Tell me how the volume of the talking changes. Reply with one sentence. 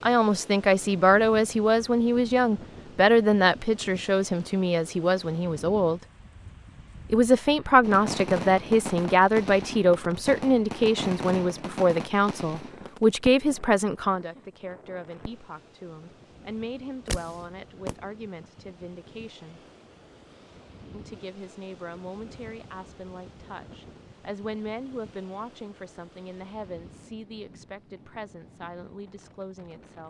The volume of the talking goes down.